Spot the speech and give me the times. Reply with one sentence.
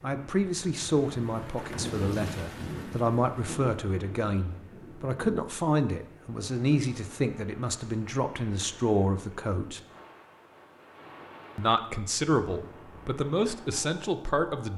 You can hear the speech from 0.0 to 9.8 s and from 11.6 to 14.7 s.